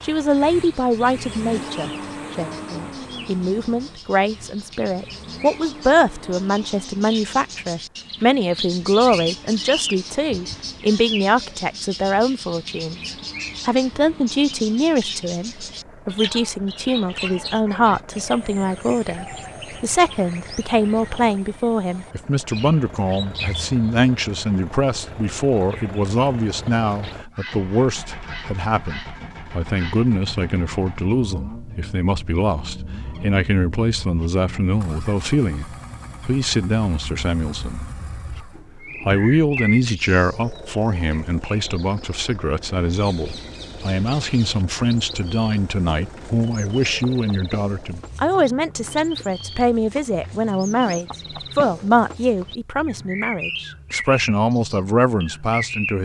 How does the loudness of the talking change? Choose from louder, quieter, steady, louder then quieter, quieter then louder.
steady.